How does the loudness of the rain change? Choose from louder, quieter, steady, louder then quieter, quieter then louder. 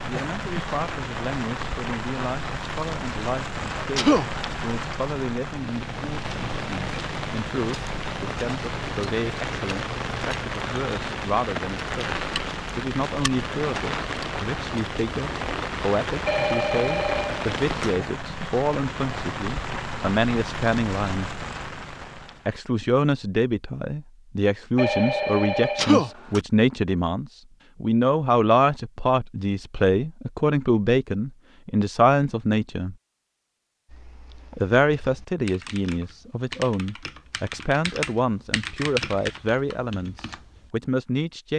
steady.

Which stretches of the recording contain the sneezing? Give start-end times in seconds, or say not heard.
3.8-4.2, 25.6-26.1.